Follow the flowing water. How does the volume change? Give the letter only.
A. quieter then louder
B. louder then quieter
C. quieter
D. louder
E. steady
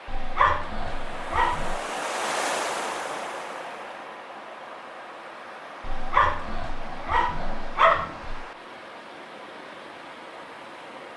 C.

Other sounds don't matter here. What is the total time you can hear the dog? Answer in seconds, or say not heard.
4 s.